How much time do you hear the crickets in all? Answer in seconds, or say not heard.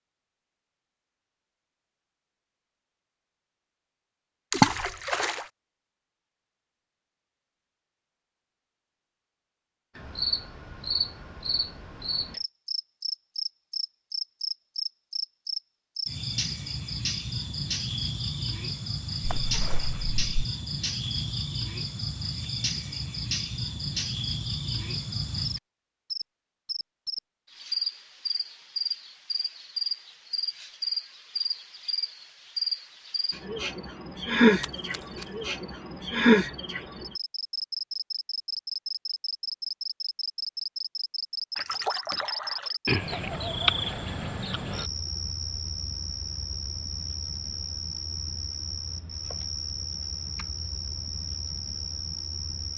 43 s.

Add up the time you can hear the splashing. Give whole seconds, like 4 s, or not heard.
4 s.